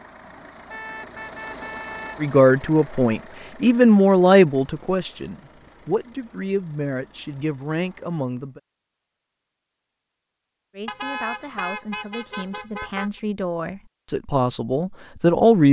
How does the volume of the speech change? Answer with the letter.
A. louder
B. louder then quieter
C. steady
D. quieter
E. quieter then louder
E.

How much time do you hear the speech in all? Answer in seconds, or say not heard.
11 s.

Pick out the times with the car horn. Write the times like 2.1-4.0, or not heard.
0.7-2.2, 10.8-13.1.